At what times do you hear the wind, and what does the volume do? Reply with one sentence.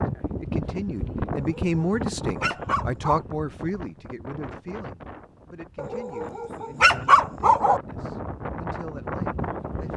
You can hear the wind from 0.0 to 9.9 s, getting quieter then louder.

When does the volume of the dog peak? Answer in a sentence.
The volume of the dog peaks at 7 seconds.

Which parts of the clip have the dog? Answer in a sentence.
The dog can be heard from 1.4 to 3.2 s and from 5.8 to 7.8 s.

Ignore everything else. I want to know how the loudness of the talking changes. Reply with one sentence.
The volume of the talking goes down.